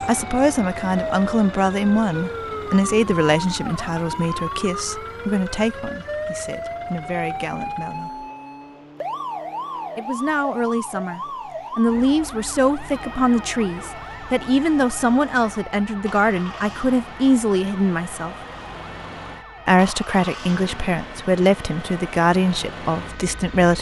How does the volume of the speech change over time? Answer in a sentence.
The volume of the speech goes down, then up.